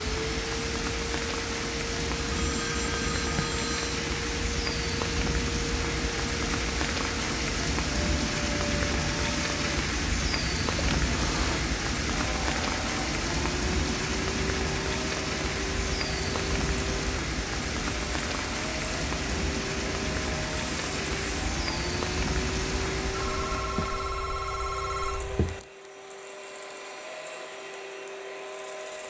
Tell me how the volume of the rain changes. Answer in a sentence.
The volume of the rain stays about the same.